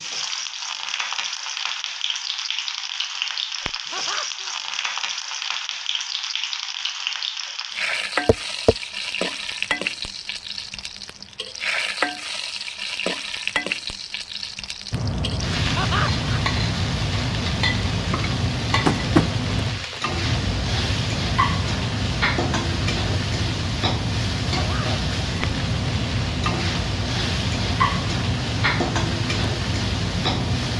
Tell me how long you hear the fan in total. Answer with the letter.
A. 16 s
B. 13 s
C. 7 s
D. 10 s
A.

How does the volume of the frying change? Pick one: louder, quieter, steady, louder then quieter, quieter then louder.
steady.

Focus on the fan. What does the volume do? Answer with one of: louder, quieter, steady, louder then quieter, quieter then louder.
steady.